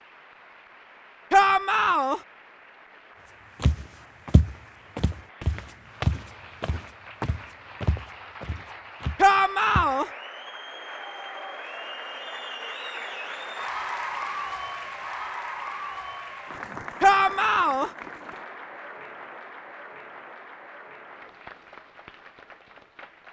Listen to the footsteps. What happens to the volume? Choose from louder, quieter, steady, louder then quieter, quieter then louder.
quieter.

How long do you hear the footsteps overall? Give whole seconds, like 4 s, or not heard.
6 s.